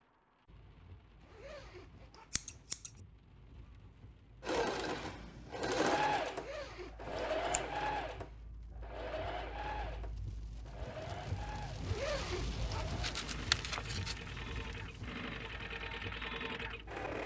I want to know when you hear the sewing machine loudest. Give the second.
6 s.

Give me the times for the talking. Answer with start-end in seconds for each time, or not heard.
not heard.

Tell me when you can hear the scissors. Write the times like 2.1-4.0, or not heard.
2.3-2.9, 7.0-7.8, 13.0-14.2.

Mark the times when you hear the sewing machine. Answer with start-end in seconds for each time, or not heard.
4.4-17.2.